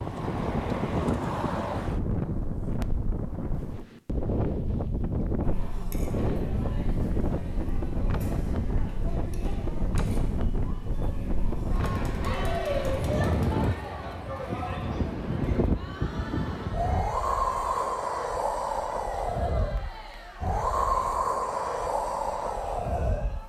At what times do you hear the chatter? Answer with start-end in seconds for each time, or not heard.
5.4-23.4.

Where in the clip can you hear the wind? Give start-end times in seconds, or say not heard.
0.0-23.4.